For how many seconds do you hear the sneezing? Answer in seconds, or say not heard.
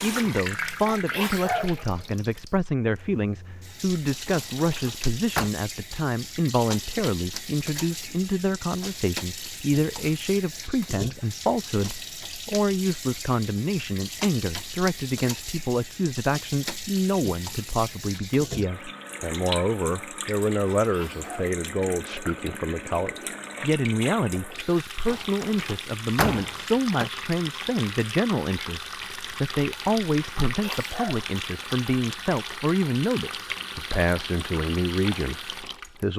3 s.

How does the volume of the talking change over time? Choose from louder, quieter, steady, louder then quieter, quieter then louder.
steady.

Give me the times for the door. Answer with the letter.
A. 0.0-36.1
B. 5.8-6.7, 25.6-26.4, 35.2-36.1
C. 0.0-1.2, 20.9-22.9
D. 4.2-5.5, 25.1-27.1
D.